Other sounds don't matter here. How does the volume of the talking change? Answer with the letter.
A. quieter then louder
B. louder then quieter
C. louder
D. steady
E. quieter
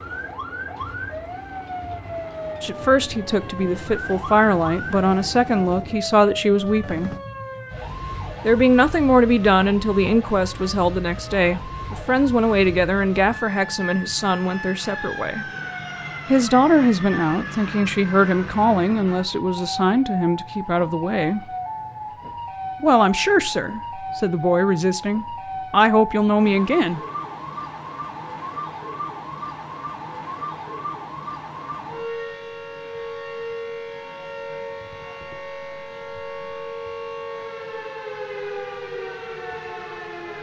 D.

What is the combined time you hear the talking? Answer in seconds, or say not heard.
21 s.